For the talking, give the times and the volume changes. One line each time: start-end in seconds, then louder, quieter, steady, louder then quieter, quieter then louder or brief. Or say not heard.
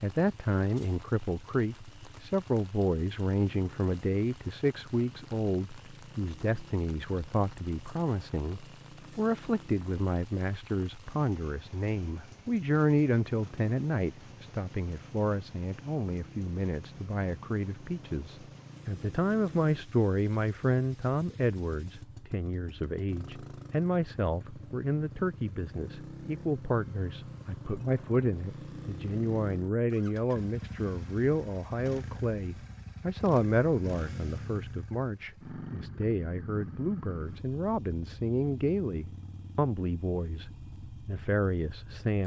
0.0-42.2 steady.